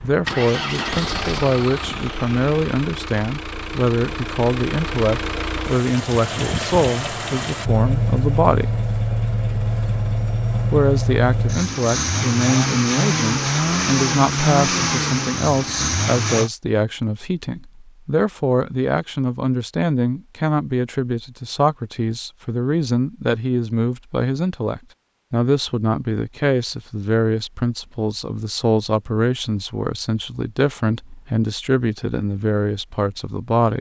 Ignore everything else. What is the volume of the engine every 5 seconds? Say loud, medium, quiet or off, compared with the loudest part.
medium, loud, loud, loud, off, off, off.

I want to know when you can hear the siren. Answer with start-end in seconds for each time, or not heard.
not heard.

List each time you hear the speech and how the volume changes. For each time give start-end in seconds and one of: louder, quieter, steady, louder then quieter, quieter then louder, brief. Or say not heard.
0.0-8.8 steady
10.7-33.7 steady.